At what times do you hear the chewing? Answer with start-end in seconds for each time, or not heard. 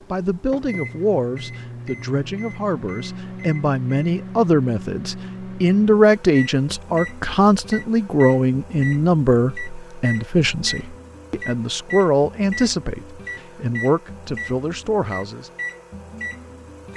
not heard.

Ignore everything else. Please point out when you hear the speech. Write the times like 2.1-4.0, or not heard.
0.1-15.5.